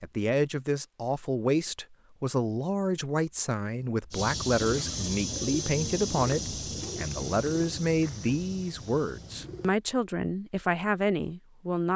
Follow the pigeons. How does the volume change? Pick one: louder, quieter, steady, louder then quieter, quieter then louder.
quieter.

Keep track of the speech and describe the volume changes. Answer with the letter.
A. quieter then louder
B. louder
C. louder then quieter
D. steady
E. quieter
D.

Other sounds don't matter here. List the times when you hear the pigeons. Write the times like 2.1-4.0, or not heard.
4.1-9.8.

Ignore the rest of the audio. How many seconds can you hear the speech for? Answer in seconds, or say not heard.
12 s.